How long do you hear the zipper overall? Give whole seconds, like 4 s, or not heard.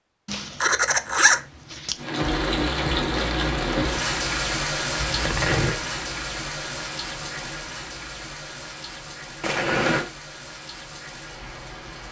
3 s.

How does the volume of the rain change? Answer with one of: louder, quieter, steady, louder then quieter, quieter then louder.
quieter.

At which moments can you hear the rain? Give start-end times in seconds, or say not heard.
1.9-12.0.